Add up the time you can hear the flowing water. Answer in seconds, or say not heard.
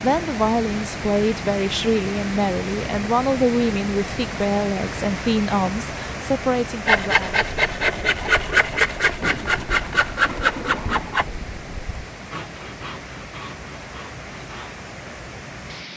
16 s.